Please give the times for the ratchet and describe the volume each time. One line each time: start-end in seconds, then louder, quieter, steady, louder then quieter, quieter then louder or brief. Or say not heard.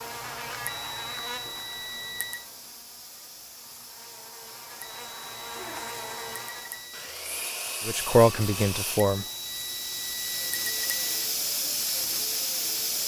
not heard.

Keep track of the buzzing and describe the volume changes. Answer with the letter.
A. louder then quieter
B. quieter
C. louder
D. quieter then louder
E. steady
D.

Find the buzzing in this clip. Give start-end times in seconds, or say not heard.
0.0-6.9.